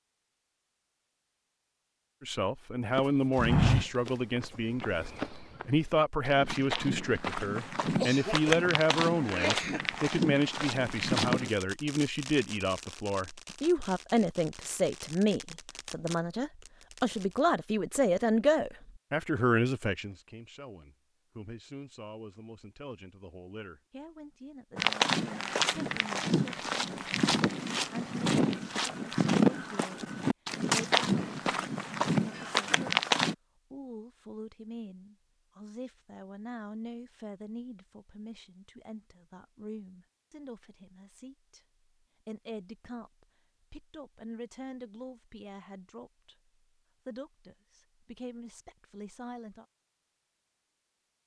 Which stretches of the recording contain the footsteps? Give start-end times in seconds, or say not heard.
3.0-11.5, 24.8-33.4.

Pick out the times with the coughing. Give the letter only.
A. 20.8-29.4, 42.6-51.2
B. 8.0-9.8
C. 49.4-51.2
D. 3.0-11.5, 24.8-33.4
B.